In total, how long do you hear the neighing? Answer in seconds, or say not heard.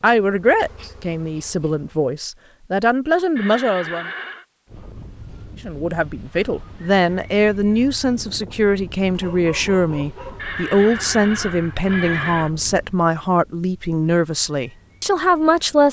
3 s.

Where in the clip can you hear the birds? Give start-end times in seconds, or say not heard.
not heard.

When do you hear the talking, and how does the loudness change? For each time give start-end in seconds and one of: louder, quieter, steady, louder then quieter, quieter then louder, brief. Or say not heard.
0.0-4.1 quieter then louder
5.7-15.8 steady.